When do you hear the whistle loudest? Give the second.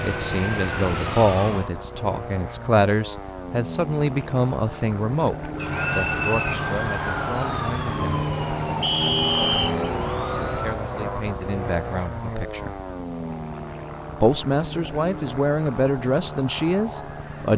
9 s.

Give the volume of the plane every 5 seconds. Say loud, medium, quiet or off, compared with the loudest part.
medium, loud, loud, medium.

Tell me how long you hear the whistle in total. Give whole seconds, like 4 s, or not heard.
2 s.